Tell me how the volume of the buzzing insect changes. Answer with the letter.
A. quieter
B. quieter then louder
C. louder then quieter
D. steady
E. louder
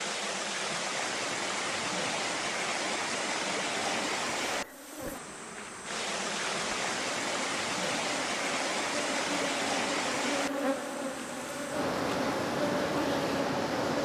E.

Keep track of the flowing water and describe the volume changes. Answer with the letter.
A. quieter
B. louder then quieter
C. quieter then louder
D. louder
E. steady
E.